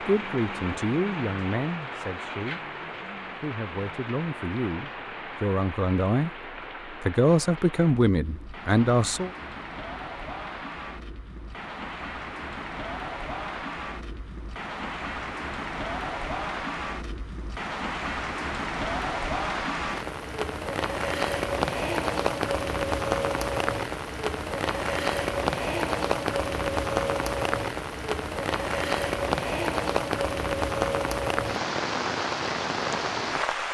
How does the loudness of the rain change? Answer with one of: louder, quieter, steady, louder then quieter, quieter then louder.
louder.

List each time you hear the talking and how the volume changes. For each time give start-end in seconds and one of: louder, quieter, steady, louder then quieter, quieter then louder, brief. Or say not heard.
0.0-2.8 brief
3.4-9.3 louder.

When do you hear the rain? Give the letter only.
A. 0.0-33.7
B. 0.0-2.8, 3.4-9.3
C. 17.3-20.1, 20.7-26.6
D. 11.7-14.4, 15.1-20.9
A.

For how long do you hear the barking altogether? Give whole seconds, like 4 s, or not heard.
not heard.